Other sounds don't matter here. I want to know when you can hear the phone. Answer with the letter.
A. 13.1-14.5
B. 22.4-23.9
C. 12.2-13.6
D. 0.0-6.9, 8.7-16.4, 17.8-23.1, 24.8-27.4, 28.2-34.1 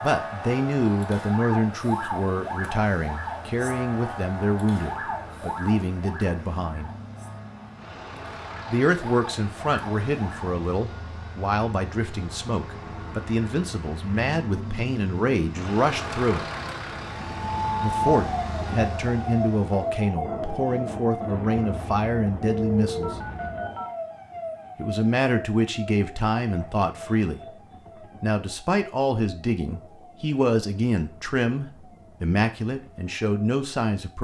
B.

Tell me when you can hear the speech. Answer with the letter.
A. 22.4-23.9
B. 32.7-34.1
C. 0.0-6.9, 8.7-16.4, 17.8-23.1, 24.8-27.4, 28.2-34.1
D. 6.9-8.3
C.